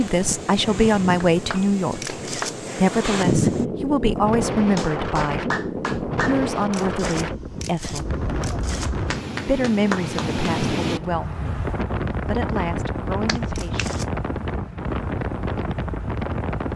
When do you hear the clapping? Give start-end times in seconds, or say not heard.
1.2-2.5, 4.5-6.4, 8.8-10.3, 13.2-13.9.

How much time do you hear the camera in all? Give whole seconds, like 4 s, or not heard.
3 s.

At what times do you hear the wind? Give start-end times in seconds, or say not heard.
0.0-16.7.